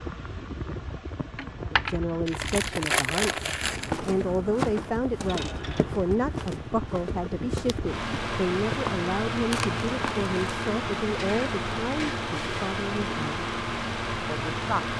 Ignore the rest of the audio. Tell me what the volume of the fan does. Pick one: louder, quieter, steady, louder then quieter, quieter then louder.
louder.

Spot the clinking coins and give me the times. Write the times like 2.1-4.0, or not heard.
1.4-1.9, 5.2-5.9, 11.2-12.7.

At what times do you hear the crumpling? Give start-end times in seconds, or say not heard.
2.2-3.9, 9.5-10.3.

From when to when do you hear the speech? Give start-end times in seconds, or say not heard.
1.6-13.4, 14.2-14.8.